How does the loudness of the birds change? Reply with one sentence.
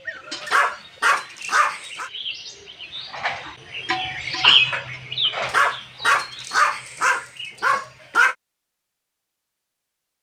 The volume of the birds goes up, then down.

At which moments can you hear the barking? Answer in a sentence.
You can hear the barking from 0.4 to 2.1 s and from 5.4 to 8.3 s.